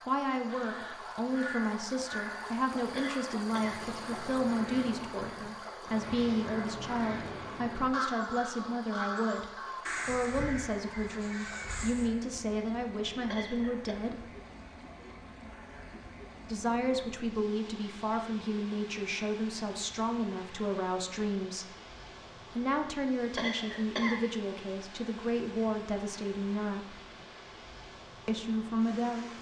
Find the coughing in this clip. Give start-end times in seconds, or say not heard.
3.0-3.9, 13.3-13.9, 23.4-24.2.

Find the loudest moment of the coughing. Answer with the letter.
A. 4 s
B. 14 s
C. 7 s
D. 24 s
D.